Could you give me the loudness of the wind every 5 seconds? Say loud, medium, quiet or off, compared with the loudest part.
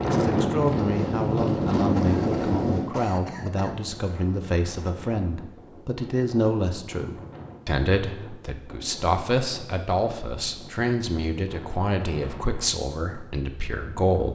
loud, quiet, quiet.